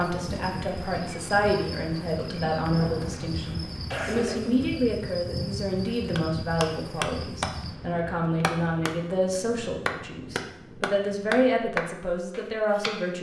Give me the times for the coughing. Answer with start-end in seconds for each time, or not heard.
2.8-4.7.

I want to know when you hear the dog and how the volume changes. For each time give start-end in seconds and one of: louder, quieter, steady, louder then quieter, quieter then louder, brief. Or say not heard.
not heard.